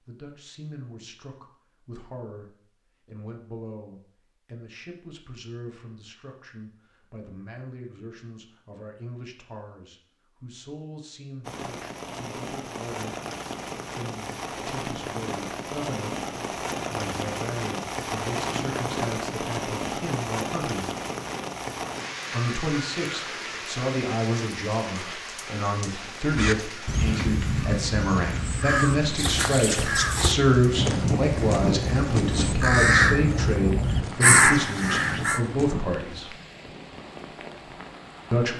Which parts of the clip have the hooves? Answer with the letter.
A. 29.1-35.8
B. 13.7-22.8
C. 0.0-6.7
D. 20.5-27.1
A.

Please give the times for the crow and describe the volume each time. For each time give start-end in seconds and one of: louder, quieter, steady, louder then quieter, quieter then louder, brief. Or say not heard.
26.3-35.4 louder.